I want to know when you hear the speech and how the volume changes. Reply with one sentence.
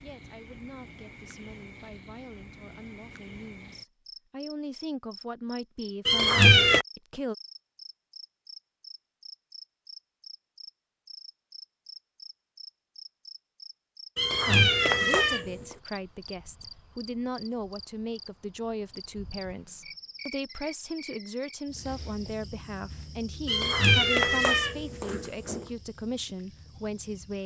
You can hear the speech from 0.0 to 7.3 s, getting louder; and from 14.4 to 27.4 s, at a steady volume.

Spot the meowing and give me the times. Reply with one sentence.
The meowing can be heard from 6.0 to 6.8 s, from 14.2 to 15.7 s and from 23.4 to 25.6 s.